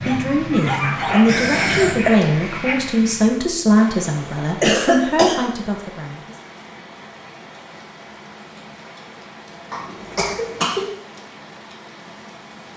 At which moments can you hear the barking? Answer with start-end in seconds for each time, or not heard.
0.0-2.9.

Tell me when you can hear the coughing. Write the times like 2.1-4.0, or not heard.
1.2-2.1, 4.6-5.4, 9.7-10.8.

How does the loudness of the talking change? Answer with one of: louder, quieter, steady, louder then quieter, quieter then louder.
steady.